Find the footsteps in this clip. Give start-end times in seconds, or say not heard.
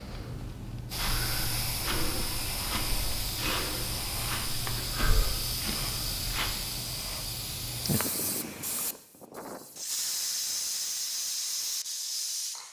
0.9-6.5.